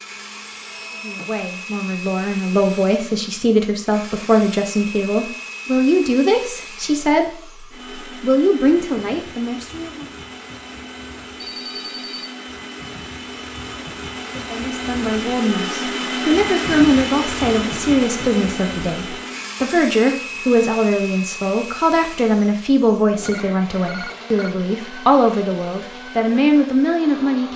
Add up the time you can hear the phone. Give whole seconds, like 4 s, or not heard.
3 s.